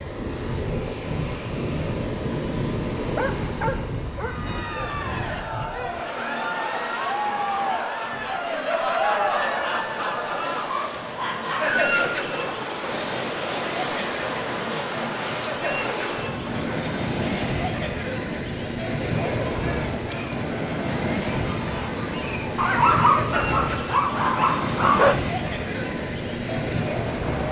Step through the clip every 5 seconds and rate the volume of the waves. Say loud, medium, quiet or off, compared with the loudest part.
loud, medium, loud, loud, loud, loud.